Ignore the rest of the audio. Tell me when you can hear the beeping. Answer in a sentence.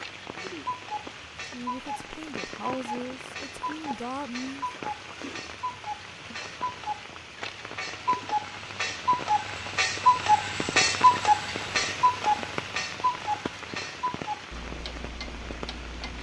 The beeping can't be heard in this clip.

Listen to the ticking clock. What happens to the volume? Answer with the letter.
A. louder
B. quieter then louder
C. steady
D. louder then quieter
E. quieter
D.